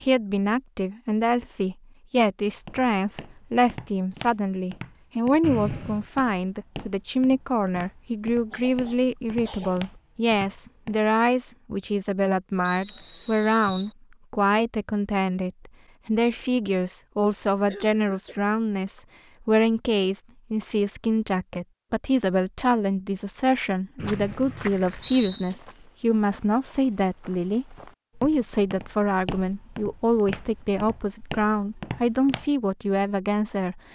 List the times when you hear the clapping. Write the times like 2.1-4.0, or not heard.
not heard.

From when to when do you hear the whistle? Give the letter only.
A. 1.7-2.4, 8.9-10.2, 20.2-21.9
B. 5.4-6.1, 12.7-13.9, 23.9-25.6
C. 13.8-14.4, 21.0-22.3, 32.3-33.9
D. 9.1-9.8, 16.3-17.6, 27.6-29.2
B.